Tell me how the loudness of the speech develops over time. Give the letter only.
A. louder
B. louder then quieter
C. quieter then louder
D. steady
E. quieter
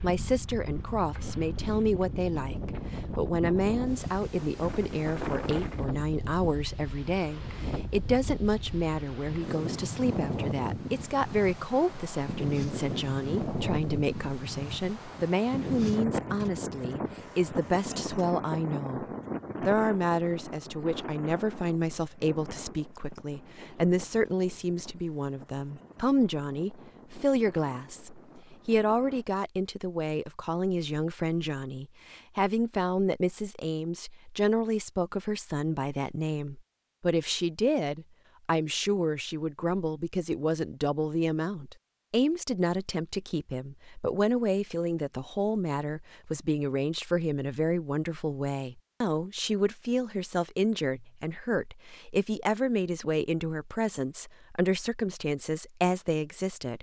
D.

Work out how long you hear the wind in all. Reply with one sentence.
You can hear the wind for 29 seconds altogether.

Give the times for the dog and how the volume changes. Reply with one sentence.
You can't hear the dog here.